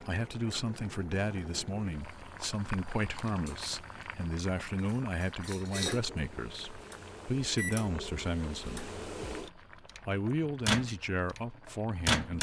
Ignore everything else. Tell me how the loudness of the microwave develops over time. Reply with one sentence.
The loudness of the microwave goes up, then down.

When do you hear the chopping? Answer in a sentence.
The chopping can't be heard in this clip.